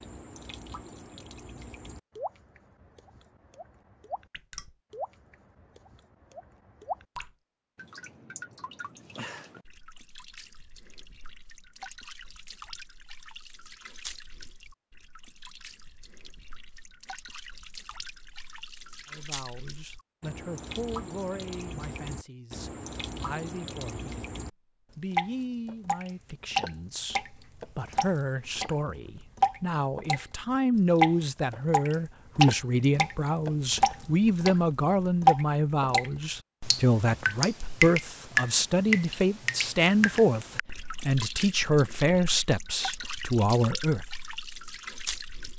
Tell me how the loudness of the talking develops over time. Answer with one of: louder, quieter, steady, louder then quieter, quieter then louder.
louder.